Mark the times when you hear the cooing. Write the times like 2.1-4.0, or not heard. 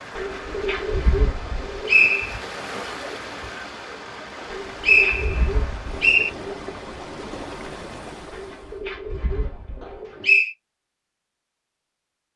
0.1-2.2, 4.5-6.6, 8.3-10.4.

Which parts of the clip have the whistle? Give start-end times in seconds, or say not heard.
1.4-2.4, 4.8-6.3, 9.8-10.5.